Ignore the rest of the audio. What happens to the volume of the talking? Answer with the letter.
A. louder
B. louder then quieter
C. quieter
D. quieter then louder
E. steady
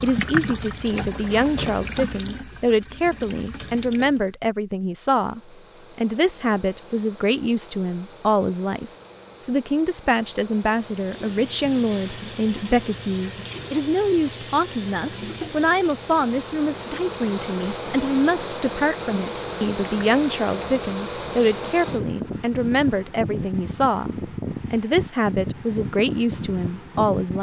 E.